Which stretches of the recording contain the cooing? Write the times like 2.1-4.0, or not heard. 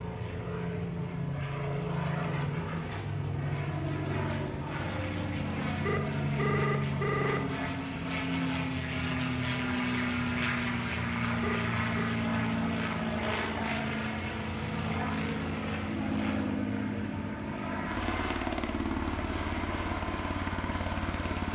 not heard.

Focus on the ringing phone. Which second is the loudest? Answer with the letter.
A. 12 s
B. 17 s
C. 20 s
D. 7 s
D.